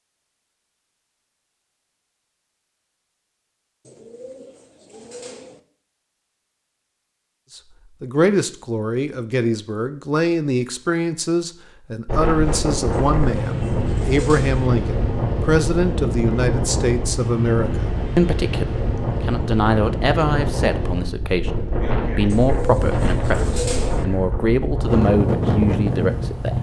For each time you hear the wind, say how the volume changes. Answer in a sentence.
You can hear the wind from 12.1 to 26.5 s, at a steady volume.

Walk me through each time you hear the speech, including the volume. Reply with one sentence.
The speech can be heard from 7.5 to 26.5 s, at a steady volume.